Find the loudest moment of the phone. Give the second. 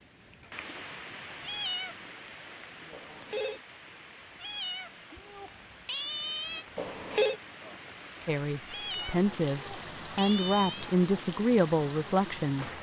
7 s.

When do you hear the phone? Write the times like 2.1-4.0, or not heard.
2.9-3.6, 6.8-7.3.